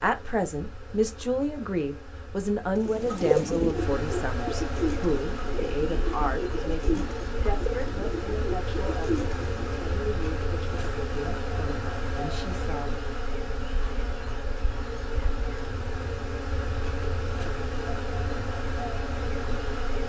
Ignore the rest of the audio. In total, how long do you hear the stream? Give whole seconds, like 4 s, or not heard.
not heard.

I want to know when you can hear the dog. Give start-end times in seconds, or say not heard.
not heard.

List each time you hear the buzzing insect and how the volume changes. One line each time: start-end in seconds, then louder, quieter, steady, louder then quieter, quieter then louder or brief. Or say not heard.
0.0-20.0 louder.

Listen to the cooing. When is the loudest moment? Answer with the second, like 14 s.
3 s.